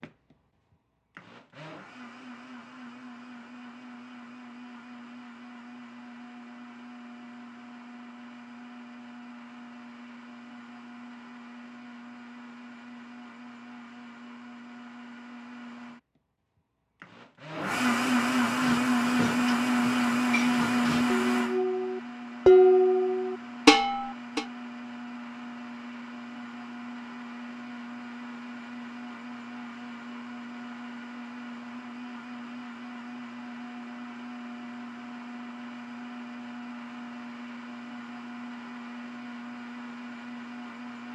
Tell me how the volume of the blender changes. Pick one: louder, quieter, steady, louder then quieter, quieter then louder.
louder then quieter.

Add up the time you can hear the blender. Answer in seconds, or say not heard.
41 s.